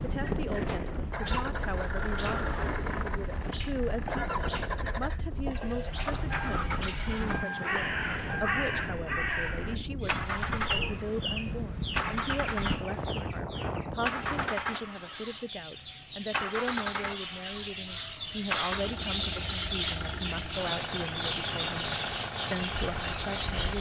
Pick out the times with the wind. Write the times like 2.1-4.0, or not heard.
0.0-14.5.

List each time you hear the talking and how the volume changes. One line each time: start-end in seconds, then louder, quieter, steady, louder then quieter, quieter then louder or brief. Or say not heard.
0.0-23.7 steady.